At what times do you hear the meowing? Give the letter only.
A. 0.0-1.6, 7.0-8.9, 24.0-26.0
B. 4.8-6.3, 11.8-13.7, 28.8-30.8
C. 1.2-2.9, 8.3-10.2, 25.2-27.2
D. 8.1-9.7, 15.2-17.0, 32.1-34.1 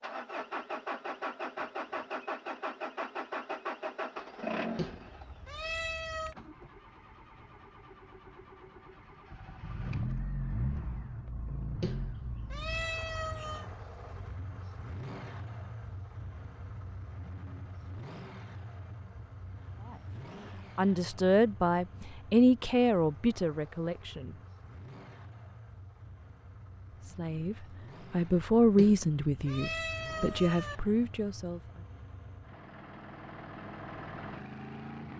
B.